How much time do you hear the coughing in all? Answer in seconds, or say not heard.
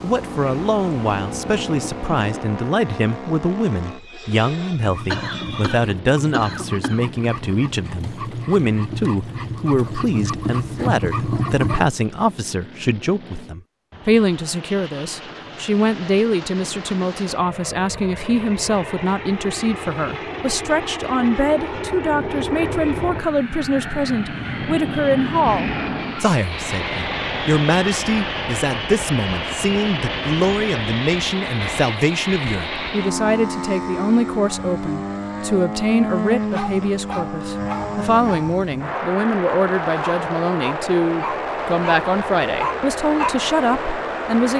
2 s.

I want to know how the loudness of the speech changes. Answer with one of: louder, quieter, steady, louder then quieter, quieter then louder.
steady.